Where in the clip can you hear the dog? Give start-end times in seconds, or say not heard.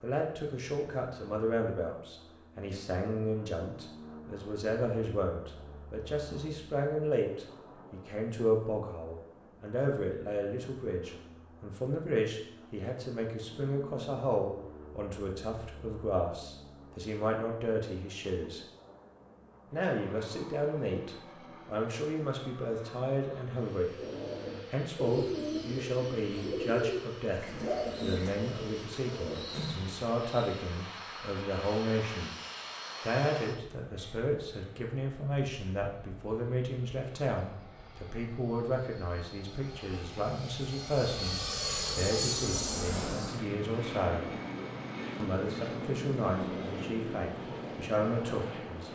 not heard.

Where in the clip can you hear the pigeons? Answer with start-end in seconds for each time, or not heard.
23.9-30.6.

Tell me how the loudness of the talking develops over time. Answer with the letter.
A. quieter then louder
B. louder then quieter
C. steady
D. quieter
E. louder
C.